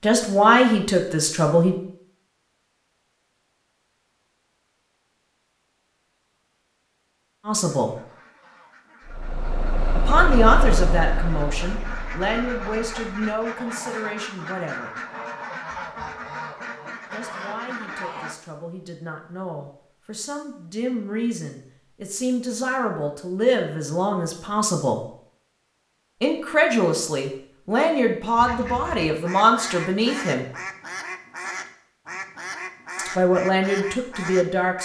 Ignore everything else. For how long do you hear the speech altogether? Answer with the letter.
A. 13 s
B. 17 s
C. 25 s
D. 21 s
D.